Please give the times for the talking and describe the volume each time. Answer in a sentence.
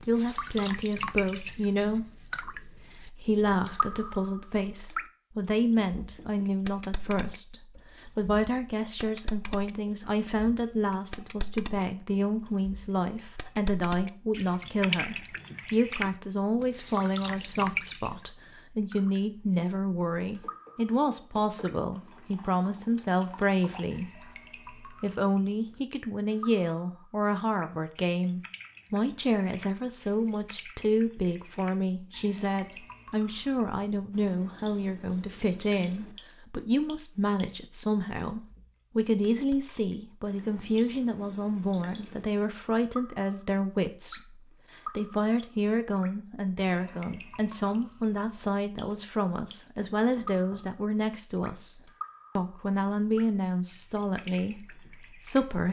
You can hear the talking from 0.0 to 55.6 s, at a steady volume.